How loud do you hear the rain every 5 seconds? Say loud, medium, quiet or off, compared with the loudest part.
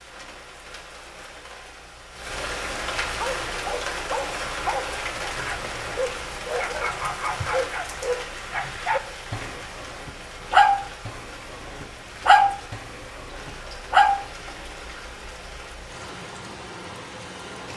loud, loud, medium, medium.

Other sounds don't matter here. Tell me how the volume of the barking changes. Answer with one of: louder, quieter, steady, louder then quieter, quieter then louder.
louder.